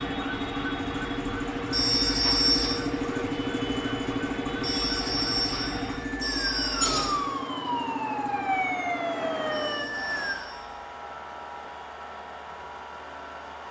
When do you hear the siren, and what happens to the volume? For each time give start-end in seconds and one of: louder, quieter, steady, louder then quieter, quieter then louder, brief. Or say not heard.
0.0-10.5 louder.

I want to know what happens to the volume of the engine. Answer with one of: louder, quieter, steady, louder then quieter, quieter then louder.
quieter.